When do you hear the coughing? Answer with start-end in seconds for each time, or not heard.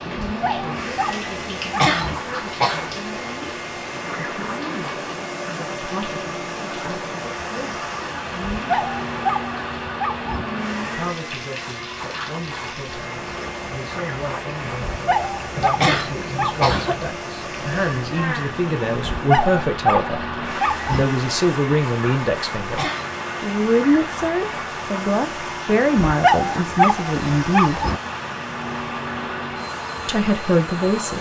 1.8-2.9, 15.8-16.9, 22.8-23.2.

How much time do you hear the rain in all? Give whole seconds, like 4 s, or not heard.
31 s.